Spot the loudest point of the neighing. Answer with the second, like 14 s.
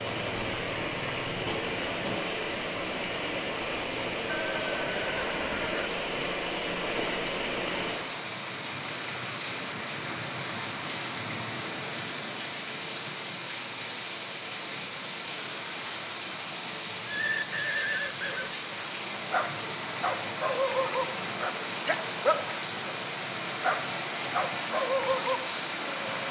18 s.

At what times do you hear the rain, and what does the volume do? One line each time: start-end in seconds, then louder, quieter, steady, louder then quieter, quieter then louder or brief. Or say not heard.
0.0-26.2 steady.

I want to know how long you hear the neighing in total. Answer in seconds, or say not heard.
3 s.